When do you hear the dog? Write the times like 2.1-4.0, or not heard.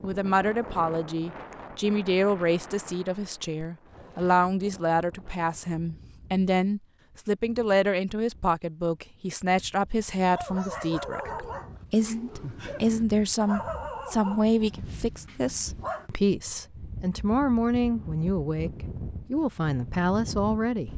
10.3-16.1.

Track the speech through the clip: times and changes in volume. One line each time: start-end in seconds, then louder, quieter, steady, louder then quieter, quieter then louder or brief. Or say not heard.
0.0-20.9 steady.